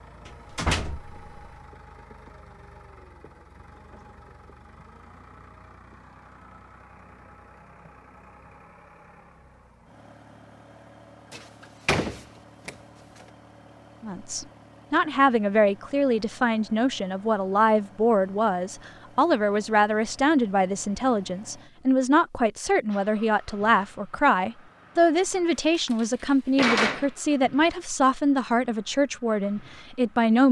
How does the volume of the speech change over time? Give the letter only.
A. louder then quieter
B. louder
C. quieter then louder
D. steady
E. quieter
D.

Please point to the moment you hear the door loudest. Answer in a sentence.
The volume of the door peaks at 27 seconds.